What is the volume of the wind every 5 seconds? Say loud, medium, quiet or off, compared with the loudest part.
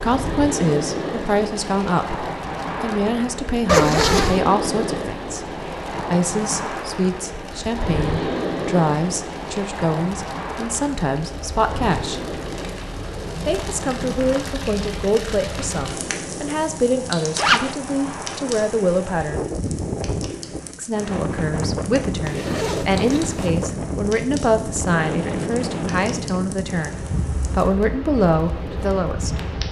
loud, loud, medium, medium, loud, loud.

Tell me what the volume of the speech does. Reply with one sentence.
The loudness of the speech stays about the same.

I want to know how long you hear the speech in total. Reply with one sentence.
You can hear the speech for 27 seconds altogether.